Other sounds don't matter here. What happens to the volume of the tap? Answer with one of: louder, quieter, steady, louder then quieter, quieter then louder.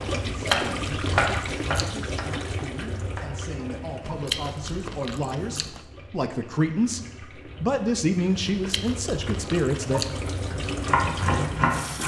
quieter then louder.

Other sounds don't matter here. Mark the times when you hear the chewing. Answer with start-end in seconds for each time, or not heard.
0.2-1.9, 4.0-5.8, 8.4-10.2.